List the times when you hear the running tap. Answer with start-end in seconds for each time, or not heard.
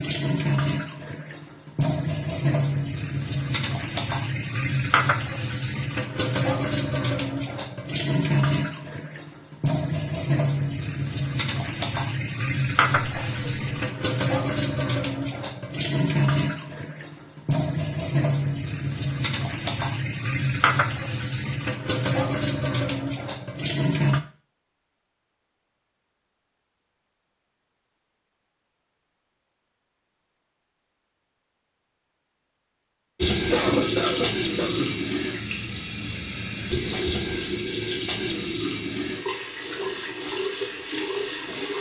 0.0-24.2, 33.2-41.7.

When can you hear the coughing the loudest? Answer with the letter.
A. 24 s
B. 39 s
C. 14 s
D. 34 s
D.